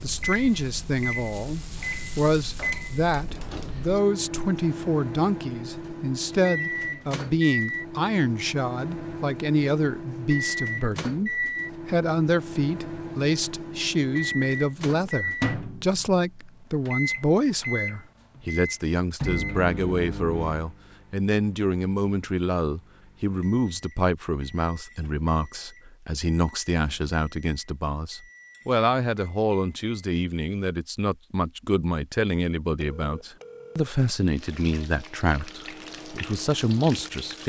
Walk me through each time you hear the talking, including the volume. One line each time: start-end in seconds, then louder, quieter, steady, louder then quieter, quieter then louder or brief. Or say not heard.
0.0-37.4 steady.